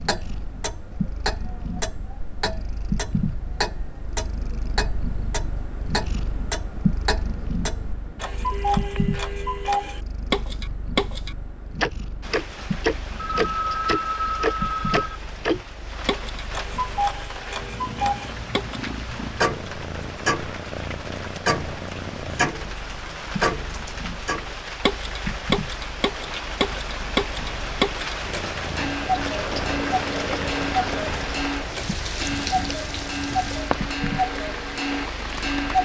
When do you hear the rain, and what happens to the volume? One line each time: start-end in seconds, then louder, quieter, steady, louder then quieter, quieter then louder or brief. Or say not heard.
12.2-35.8 louder.